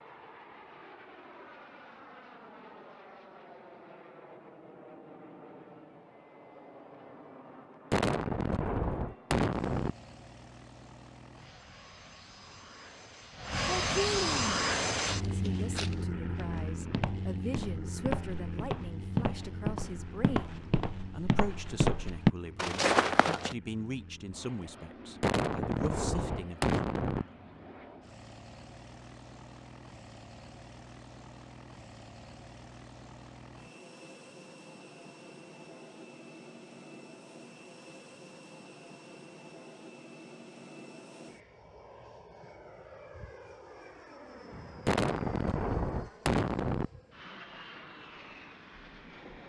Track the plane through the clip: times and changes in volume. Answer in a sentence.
The plane can be heard from 0.0 to 49.4 s, getting louder then quieter.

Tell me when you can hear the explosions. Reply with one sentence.
The explosions can be heard from 7.9 to 9.9 s, from 25.2 to 27.2 s and from 44.9 to 46.9 s.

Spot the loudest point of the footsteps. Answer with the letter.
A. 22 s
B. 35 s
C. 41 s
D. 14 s
A.